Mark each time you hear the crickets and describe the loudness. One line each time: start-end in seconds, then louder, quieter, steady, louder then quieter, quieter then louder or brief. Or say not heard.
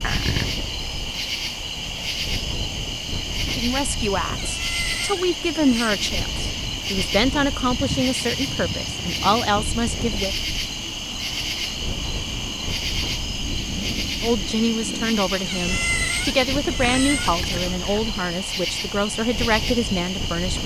0.0-20.6 steady.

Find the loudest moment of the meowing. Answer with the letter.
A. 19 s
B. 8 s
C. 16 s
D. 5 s
C.